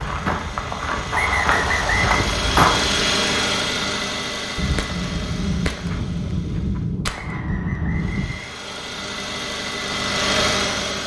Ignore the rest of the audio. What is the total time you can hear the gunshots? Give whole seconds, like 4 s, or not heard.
4 s.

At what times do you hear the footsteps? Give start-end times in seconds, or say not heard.
0.0-3.0.